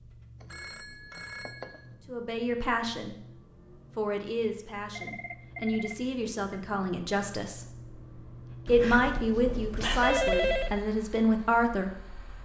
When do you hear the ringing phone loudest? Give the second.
10 s.